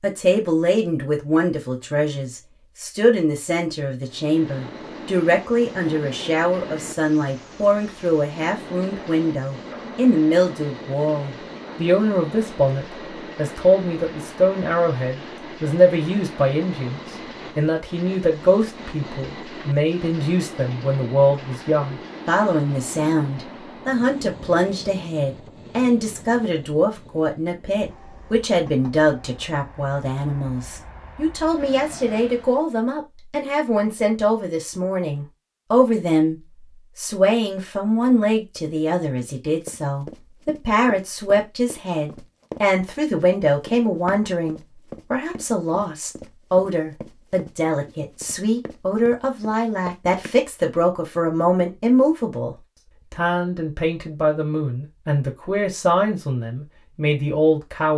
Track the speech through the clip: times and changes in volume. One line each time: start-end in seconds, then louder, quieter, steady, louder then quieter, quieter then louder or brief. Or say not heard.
0.0-57.9 steady.